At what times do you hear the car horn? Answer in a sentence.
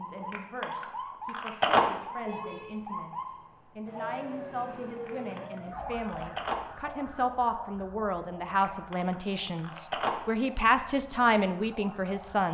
You can hear the car horn from 2.2 to 2.8 s.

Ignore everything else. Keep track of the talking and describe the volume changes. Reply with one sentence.
The loudness of the talking goes up.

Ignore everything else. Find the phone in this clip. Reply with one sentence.
The phone can be heard from 0.3 to 1.8 s, from 5.0 to 6.5 s and from 8.6 to 10.1 s.